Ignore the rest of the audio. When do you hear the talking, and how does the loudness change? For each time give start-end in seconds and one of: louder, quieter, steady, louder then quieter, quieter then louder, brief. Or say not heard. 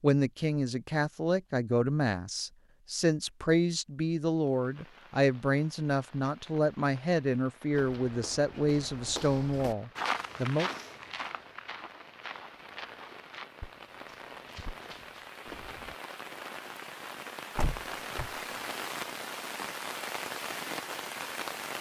0.0-10.7 steady.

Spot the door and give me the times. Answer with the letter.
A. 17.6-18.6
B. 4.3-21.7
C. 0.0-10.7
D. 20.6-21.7
A.